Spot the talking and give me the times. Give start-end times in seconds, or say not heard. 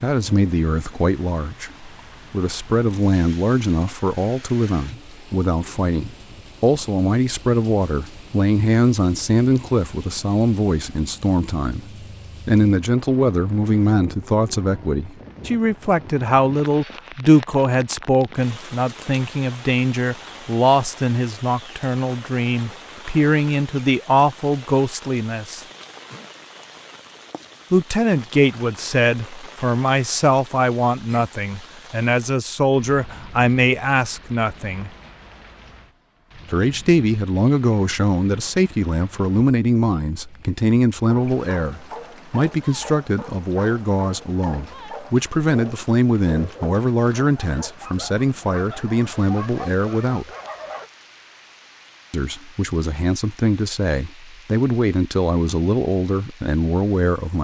0.0-25.6, 27.7-34.9, 36.5-50.3, 52.1-57.3.